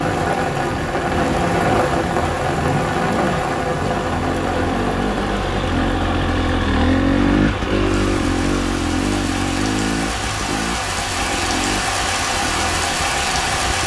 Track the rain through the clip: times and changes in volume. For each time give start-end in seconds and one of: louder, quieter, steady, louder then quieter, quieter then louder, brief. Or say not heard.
0.0-13.8 quieter then louder.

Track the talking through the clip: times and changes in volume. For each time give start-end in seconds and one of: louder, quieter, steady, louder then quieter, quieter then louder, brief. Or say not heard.
not heard.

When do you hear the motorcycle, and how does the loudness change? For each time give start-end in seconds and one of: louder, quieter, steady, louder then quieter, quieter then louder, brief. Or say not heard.
0.0-13.8 louder then quieter.